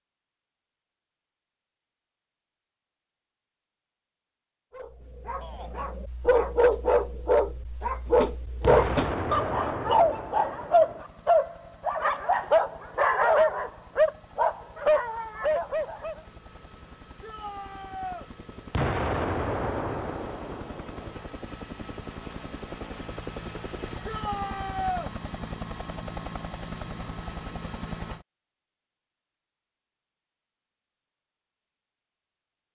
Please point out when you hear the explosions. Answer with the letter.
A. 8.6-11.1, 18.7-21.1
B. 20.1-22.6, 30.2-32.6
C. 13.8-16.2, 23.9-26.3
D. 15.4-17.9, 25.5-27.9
A.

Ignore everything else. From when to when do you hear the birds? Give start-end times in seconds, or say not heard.
not heard.